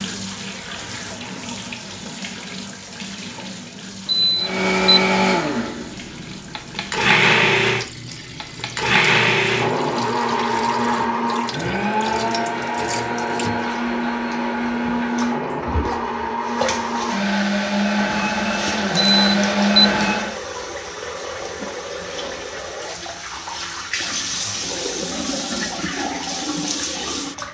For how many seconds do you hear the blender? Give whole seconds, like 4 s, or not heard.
16 s.